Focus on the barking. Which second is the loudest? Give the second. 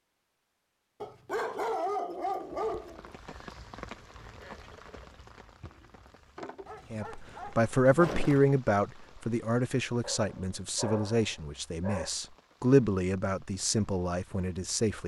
2 s.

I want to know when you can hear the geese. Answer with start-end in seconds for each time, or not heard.
not heard.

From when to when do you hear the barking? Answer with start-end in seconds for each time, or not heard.
1.0-3.1, 6.7-8.5, 10.0-12.1.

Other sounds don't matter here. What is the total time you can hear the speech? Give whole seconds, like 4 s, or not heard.
8 s.